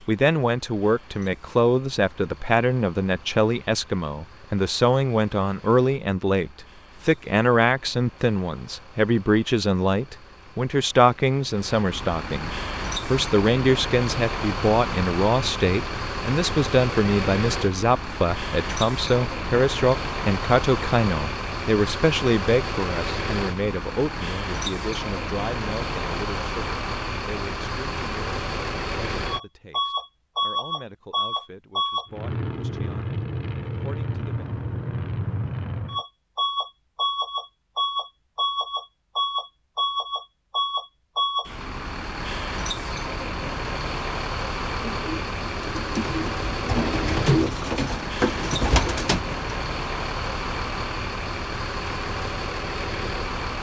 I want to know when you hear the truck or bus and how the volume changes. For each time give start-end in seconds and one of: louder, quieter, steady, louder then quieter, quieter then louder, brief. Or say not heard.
0.0-53.5 louder.